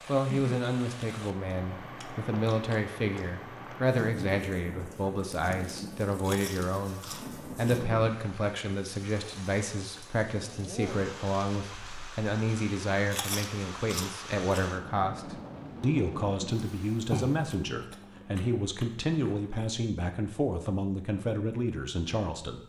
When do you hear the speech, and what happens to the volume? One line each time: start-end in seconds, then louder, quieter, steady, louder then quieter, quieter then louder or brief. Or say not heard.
0.1-22.6 steady.